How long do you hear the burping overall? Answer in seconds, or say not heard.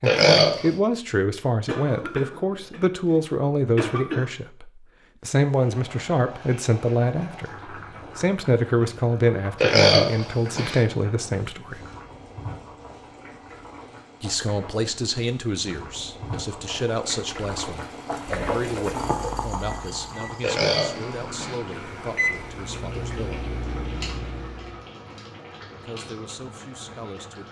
3 s.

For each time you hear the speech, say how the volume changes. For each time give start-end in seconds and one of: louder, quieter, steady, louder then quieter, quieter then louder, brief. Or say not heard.
0.0-11.8 steady
14.2-23.4 quieter
25.8-27.4 brief.